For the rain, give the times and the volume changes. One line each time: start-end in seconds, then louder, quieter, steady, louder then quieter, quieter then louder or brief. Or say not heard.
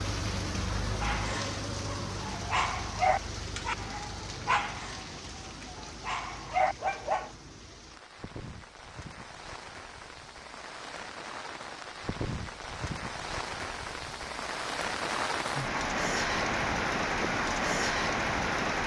0.0-18.8 quieter then louder.